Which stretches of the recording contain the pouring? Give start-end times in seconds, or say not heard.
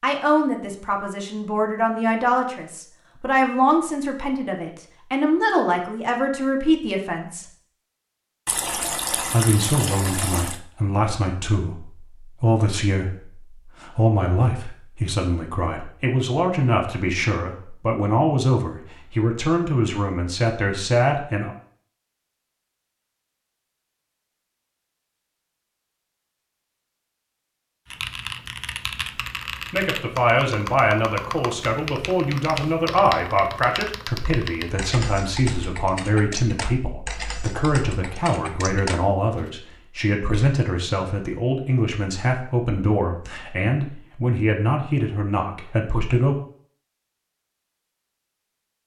8.4-10.6.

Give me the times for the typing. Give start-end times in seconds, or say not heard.
27.9-39.5.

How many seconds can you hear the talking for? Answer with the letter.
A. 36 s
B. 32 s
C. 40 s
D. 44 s
A.